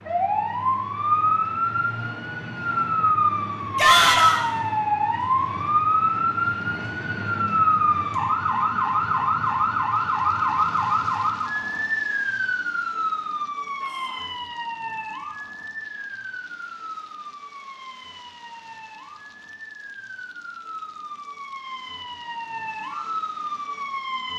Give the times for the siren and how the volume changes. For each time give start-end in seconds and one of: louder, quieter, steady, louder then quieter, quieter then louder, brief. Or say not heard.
0.0-24.3 quieter.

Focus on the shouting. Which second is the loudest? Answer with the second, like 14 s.
4 s.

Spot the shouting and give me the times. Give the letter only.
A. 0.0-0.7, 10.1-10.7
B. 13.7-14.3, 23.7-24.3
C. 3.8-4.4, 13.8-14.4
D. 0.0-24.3
C.